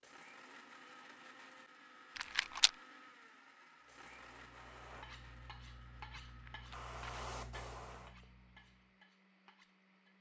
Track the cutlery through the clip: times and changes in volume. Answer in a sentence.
You can hear the cutlery from 4.9 to 10.1 s, getting quieter.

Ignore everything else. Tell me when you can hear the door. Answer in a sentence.
You can't hear the door here.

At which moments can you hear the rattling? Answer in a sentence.
You can hear the rattling from 2.1 to 2.7 s and from 6.2 to 7.2 s.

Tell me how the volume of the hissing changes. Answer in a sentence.
The loudness of the hissing goes up, then down.